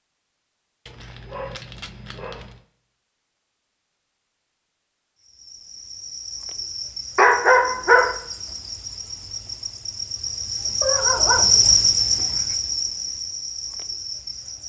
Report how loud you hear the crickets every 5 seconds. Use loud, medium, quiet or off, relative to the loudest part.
off, quiet, loud.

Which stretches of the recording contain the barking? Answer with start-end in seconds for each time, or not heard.
0.8-2.5, 7.2-8.2, 10.8-12.4.